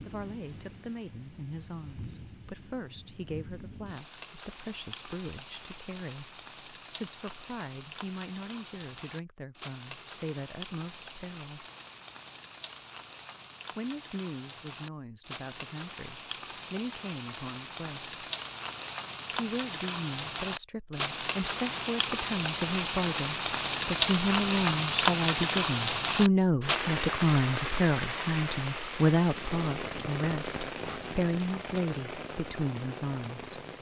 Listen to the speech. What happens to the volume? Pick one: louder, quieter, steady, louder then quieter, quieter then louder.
louder.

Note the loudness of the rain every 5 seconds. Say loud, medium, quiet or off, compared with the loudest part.
quiet, quiet, quiet, medium, loud, loud, medium.